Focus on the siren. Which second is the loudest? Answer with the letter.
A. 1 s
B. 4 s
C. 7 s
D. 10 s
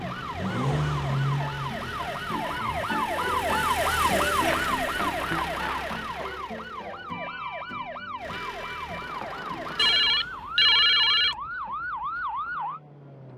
B.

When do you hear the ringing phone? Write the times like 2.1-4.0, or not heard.
9.8-11.3.